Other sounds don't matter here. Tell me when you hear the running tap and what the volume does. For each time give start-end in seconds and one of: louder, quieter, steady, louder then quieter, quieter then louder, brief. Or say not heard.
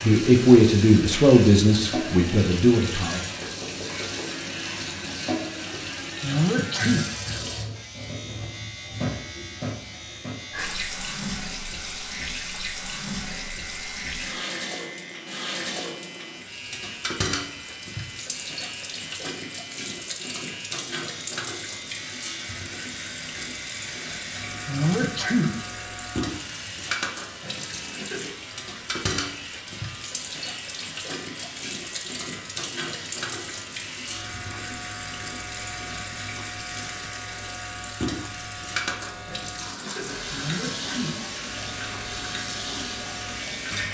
0.0-43.8 steady.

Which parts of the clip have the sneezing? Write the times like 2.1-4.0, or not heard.
6.2-7.1, 24.6-25.6, 40.3-41.5.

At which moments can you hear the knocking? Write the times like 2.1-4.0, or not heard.
3.4-4.2.